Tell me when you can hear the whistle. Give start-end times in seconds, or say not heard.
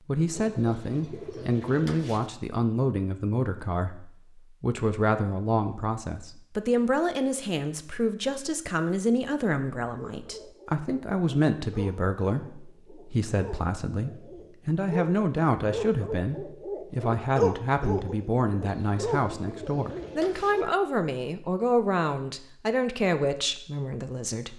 not heard.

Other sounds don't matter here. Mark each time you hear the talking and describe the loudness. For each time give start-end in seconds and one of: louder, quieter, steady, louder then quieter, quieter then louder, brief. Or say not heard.
0.1-24.5 steady.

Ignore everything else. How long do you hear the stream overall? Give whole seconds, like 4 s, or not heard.
not heard.